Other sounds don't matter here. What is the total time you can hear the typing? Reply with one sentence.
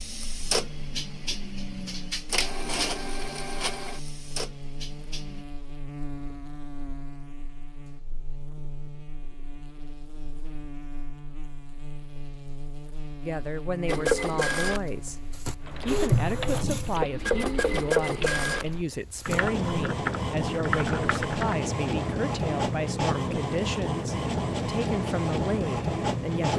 You can hear the typing for 6 seconds altogether.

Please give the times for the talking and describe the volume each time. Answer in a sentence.
The talking can be heard from 13.2 to 26.5 s, at a steady volume.